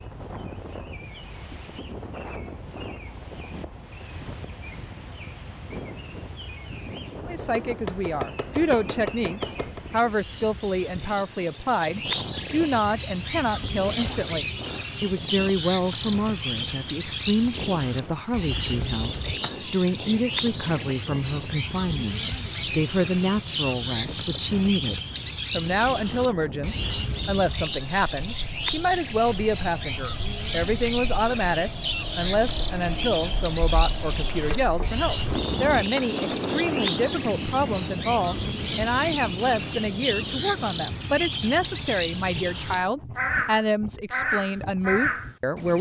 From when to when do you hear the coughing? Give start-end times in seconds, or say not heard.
not heard.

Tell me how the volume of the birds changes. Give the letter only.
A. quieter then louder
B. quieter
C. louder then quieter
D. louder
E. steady
D.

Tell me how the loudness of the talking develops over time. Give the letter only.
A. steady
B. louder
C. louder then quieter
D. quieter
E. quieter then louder
A.